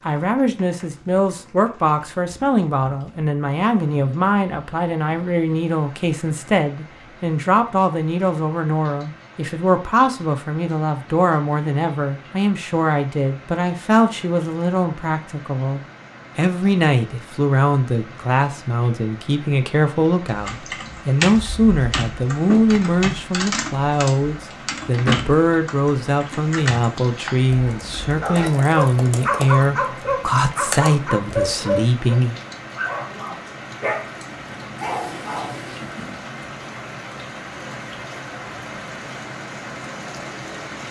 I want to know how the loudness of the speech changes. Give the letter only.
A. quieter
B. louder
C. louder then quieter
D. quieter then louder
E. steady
E.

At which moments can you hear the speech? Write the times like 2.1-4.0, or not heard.
0.1-32.4.